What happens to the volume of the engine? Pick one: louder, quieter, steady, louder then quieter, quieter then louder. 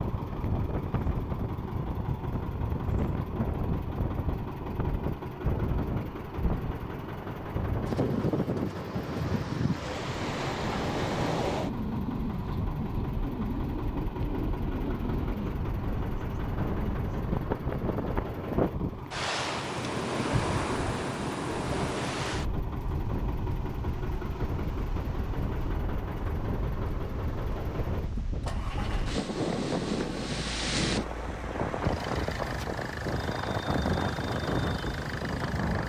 steady.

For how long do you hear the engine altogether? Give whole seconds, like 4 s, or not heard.
36 s.